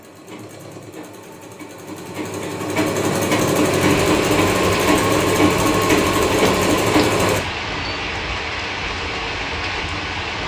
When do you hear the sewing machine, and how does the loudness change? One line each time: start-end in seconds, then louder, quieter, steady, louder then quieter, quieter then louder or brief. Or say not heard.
0.0-7.4 louder.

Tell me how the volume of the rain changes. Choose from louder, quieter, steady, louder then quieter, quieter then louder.
steady.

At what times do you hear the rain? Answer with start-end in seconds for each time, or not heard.
3.6-10.4.